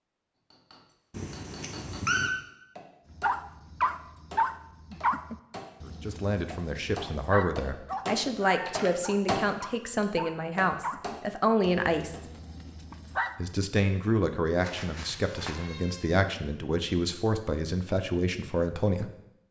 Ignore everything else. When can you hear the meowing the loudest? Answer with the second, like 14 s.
2 s.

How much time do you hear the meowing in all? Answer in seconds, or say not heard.
4 s.